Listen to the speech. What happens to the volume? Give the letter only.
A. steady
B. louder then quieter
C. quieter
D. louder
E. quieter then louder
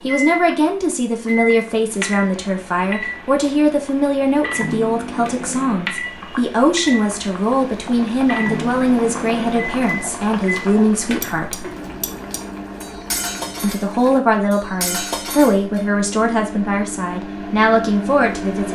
A.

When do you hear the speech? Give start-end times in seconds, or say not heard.
0.0-11.8, 13.6-18.7.